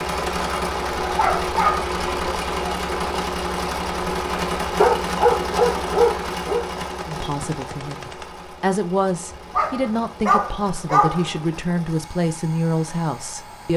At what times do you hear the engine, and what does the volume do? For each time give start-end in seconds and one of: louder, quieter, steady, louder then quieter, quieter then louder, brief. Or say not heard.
0.0-13.7 quieter.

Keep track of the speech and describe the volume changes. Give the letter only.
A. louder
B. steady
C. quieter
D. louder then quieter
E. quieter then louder
A.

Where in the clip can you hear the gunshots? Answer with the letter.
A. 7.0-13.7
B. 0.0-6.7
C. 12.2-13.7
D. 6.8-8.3
D.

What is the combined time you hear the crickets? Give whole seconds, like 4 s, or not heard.
not heard.